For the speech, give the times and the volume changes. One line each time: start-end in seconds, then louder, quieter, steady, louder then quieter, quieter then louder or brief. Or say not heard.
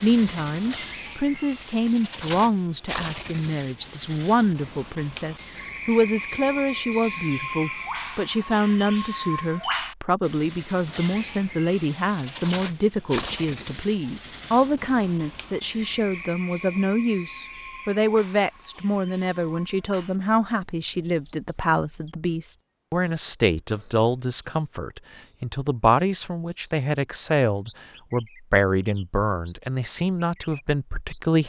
0.0-31.4 steady.